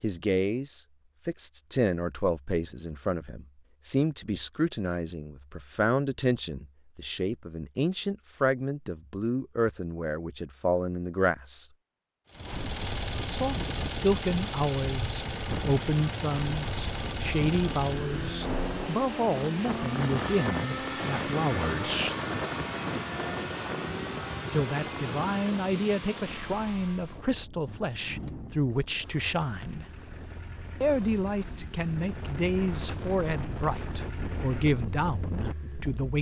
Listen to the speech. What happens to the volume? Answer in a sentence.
The loudness of the speech stays about the same.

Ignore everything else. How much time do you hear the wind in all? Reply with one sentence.
You can hear the wind for 24 seconds altogether.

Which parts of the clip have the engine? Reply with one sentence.
You can hear the engine from 12.2 to 36.1 s.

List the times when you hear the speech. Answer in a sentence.
The speech can be heard from 0.0 to 11.7 s, from 13.2 to 22.1 s, from 24.5 to 29.9 s and from 30.8 to 36.1 s.